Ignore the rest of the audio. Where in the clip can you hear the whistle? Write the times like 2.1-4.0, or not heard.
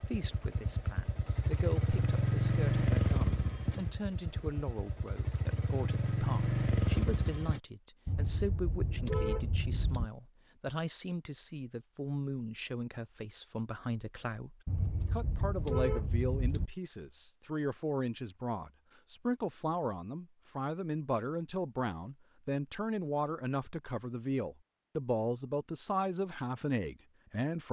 not heard.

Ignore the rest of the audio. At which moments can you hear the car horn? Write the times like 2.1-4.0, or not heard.
8.1-10.1, 14.7-16.7.